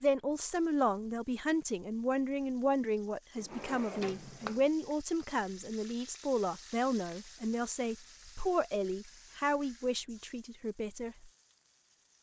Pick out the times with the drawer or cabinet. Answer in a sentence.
You can hear the drawer or cabinet from 3.4 to 4.7 s.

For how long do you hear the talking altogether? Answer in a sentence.
The talking can be heard for 11 seconds in total.